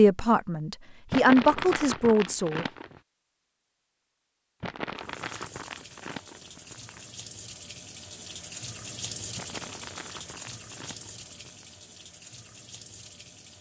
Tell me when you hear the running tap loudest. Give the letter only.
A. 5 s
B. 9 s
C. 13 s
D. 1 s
B.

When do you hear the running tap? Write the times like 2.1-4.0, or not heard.
5.0-13.5.